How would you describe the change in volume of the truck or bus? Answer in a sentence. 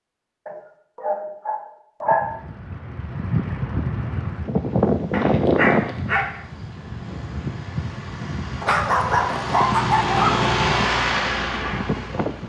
The volume of the truck or bus goes up.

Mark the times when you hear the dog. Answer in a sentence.
You can hear the dog from 0.5 to 2.2 s, from 5.1 to 6.3 s and from 8.6 to 10.5 s.